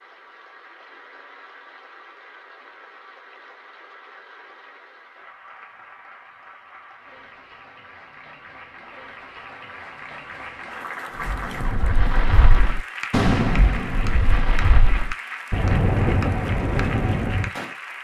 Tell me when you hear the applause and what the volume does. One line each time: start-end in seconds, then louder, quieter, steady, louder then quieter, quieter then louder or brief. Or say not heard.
0.0-17.9 louder.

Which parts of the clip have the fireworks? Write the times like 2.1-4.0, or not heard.
11.2-17.7.